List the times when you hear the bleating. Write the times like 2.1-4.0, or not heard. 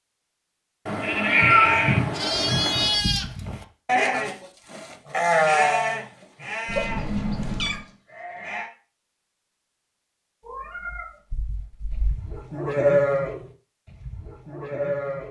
1.0-8.7, 11.9-15.2.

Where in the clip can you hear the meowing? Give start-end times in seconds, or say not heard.
0.8-3.0, 6.7-7.8, 10.4-12.2.